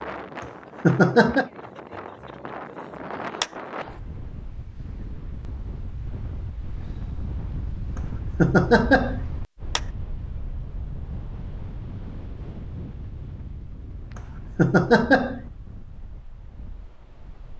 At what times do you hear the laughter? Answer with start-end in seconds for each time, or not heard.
0.4-1.5, 8.0-9.2, 14.2-15.4.